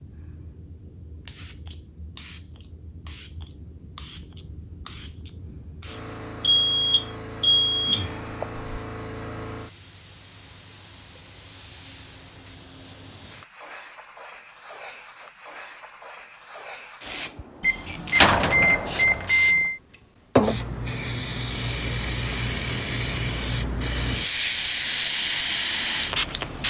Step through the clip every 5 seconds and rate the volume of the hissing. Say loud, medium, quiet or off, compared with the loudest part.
quiet, quiet, quiet, quiet, loud, loud.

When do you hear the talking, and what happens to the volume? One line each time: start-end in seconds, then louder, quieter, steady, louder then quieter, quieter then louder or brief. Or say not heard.
not heard.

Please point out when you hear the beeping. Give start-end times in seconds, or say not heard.
6.4-8.7, 17.6-19.8.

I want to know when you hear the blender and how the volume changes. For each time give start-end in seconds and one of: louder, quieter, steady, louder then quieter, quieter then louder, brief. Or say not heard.
not heard.